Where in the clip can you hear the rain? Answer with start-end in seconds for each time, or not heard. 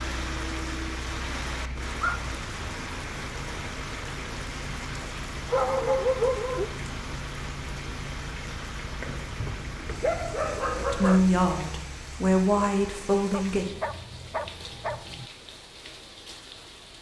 0.0-16.9.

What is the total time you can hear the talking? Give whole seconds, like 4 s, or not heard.
3 s.